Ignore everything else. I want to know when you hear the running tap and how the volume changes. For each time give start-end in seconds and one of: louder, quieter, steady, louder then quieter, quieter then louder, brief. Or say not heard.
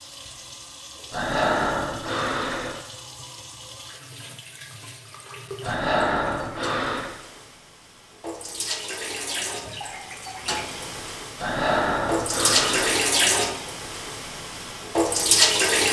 0.0-15.8 louder.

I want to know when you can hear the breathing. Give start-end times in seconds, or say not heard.
1.1-2.8, 5.6-7.1, 11.3-13.1.